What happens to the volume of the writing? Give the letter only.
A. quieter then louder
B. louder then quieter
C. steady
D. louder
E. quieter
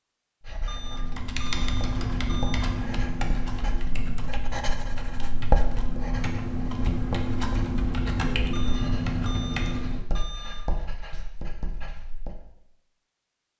B.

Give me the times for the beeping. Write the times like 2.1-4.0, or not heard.
0.7-2.8, 8.5-10.7.